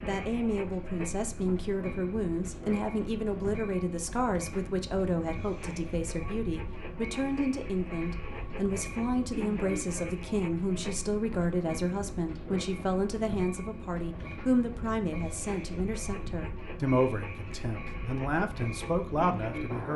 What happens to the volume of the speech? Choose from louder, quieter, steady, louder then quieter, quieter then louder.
steady.